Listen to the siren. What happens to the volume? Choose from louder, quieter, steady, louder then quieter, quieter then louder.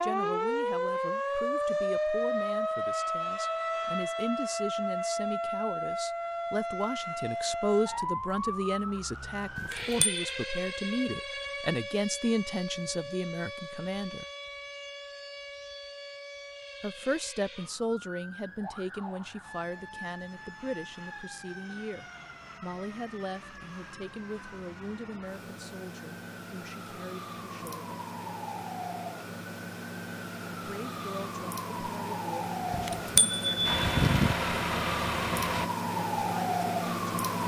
quieter then louder.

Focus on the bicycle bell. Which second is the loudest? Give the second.
34 s.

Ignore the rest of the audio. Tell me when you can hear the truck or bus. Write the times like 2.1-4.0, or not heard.
33.6-35.7.